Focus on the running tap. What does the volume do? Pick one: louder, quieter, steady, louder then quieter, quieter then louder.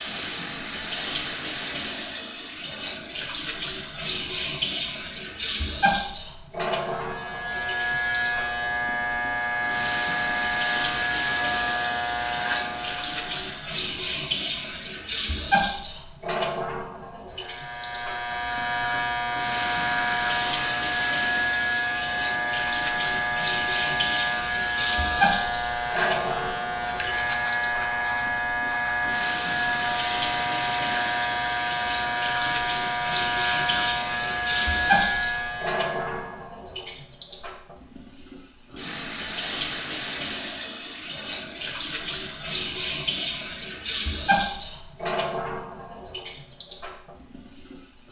steady.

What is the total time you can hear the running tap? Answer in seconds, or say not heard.
48 s.